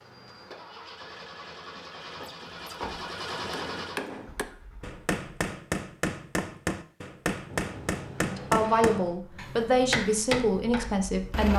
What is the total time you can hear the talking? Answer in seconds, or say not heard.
3 s.